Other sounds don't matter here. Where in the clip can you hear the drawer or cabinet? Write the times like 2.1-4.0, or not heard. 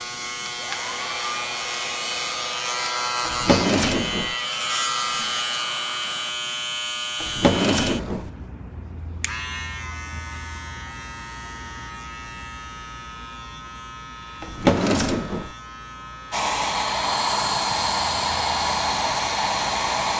3.2-4.3, 7.2-8.3, 14.4-15.5.